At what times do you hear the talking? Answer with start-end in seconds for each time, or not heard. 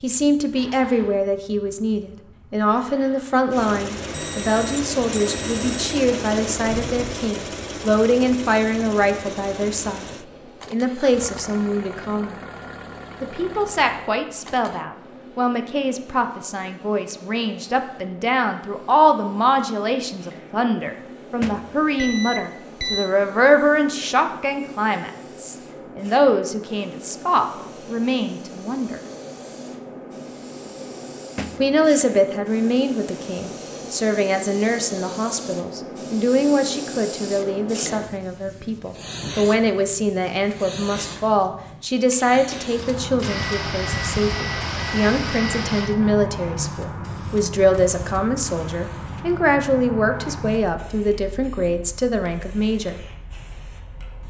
0.0-10.1, 10.7-12.4, 13.2-29.0, 31.6-53.0.